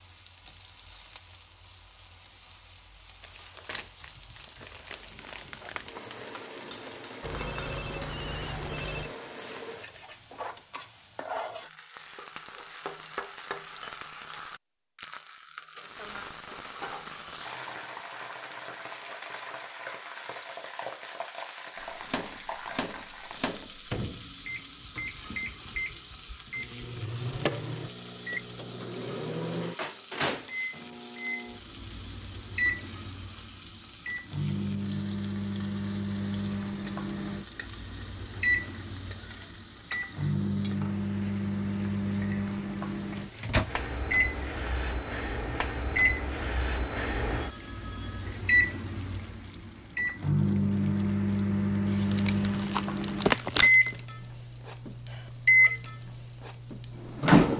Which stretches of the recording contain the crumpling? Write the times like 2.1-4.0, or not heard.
3.2-6.0, 51.9-54.0.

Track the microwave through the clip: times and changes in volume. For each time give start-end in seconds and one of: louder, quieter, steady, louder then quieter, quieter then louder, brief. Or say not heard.
21.8-57.5 louder.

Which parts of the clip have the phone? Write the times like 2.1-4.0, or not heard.
7.2-9.2, 47.2-48.5.